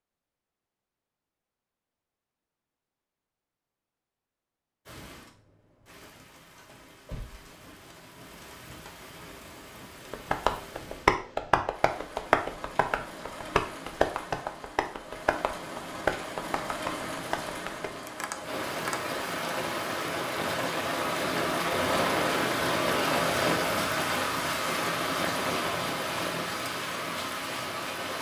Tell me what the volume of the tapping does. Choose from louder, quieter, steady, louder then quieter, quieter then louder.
quieter.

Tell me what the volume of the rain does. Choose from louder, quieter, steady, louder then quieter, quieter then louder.
louder.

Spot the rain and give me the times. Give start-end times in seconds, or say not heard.
4.8-28.1.